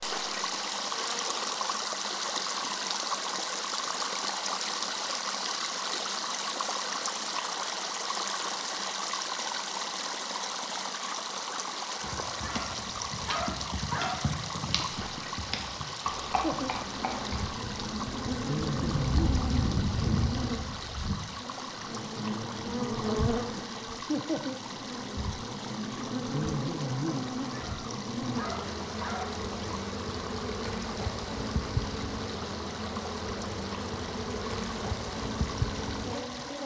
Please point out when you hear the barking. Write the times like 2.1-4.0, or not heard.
12.4-14.3, 27.5-29.4.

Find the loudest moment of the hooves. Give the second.
20 s.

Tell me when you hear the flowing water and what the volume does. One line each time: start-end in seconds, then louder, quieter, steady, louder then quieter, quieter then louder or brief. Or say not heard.
0.0-36.6 quieter.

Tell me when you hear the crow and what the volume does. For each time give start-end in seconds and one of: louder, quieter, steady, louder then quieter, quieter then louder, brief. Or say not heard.
not heard.